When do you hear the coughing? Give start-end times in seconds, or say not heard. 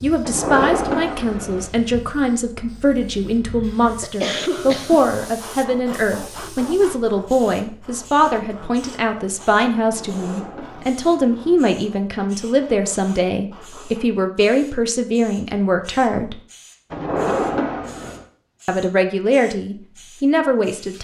3.5-5.0.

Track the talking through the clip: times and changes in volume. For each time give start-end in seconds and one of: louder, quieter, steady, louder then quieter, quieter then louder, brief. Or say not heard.
0.0-16.4 steady
18.6-20.9 brief.